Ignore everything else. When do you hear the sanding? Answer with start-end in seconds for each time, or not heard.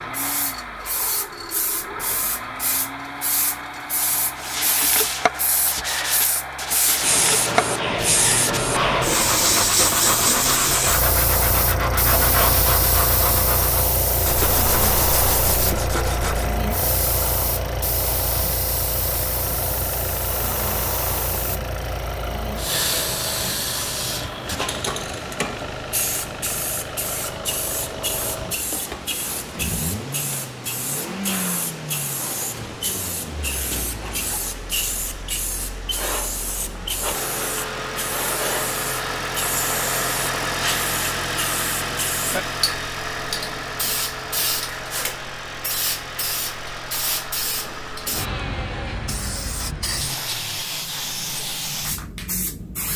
4.3-16.6.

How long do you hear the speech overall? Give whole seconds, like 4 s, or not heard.
not heard.